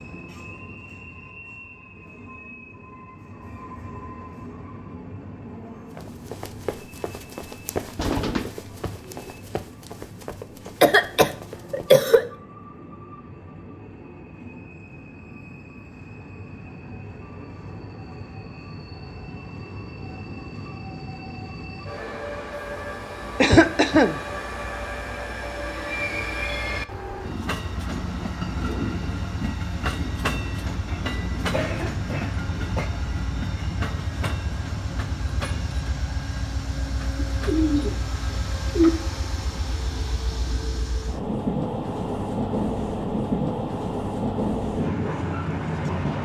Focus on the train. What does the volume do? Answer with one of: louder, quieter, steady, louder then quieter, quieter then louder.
louder.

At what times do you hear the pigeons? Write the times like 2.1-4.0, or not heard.
8.0-9.3, 37.1-38.9.